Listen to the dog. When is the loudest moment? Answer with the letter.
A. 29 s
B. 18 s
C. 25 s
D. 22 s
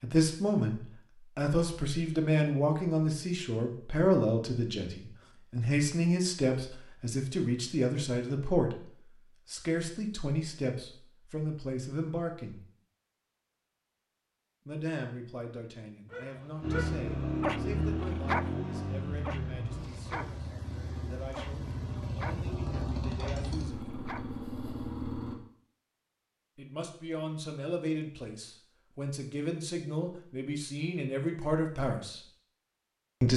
B.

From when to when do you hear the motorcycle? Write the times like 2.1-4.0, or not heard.
16.6-25.4.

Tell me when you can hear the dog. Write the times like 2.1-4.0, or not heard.
16.1-18.5, 19.2-20.3, 21.3-22.4, 23.2-24.2.